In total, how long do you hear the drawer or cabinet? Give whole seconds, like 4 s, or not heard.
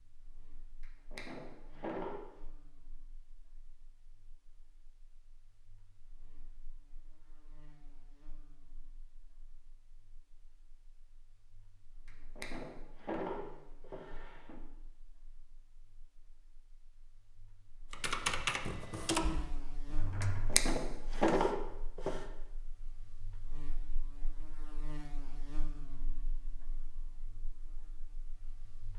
6 s.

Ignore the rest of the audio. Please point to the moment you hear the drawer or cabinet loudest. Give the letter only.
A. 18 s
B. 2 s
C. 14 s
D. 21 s
D.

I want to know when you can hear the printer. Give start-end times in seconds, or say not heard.
not heard.